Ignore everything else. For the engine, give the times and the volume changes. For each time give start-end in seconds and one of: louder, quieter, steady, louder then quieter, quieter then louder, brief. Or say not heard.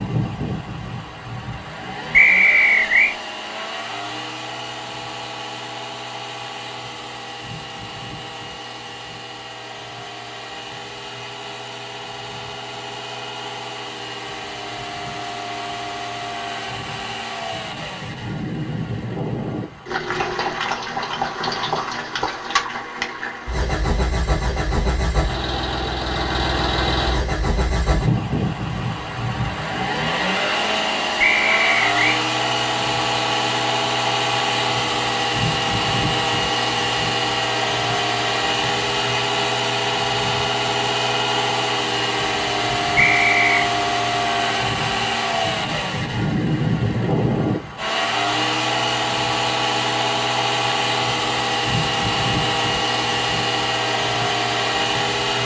0.0-55.4 louder.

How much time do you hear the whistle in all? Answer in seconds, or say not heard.
3 s.